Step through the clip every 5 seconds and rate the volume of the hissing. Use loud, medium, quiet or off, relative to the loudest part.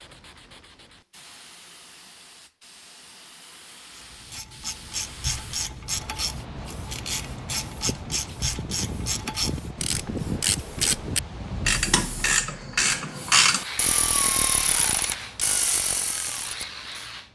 quiet, loud, loud, medium.